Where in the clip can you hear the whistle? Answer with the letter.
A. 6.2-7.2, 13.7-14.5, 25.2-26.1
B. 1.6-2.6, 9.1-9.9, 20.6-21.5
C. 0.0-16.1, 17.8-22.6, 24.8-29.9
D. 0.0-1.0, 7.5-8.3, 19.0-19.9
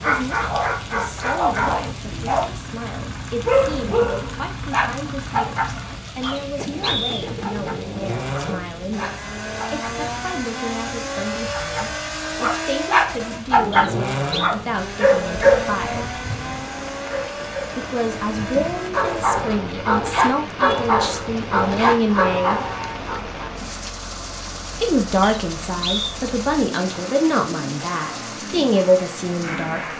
A.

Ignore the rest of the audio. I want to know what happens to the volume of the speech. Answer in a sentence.
The volume of the speech goes up.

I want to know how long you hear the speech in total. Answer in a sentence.
You can hear the speech for 26 seconds altogether.